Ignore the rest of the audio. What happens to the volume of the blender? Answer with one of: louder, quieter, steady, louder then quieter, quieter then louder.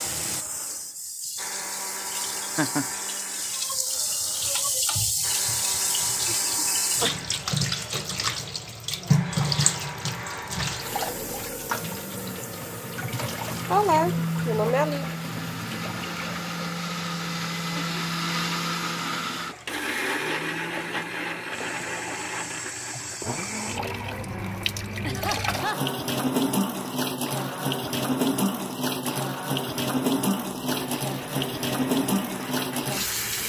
louder then quieter.